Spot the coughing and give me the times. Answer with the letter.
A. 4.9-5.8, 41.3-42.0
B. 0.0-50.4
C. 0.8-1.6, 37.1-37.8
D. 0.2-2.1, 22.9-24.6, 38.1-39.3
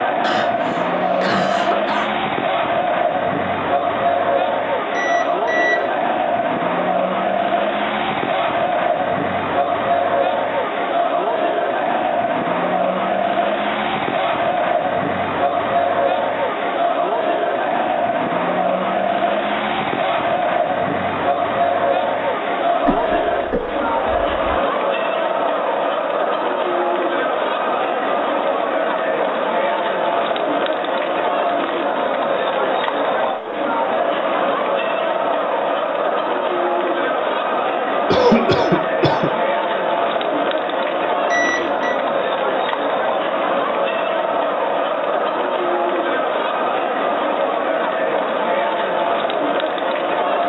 D.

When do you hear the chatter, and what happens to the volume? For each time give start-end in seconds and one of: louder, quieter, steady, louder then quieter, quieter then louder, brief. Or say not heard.
0.0-50.4 steady.